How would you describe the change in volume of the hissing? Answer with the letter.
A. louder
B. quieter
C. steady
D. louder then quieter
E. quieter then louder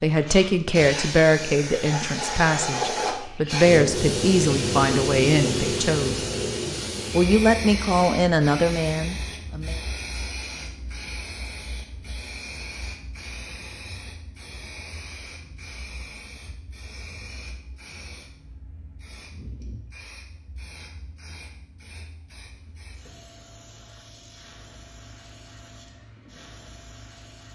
B.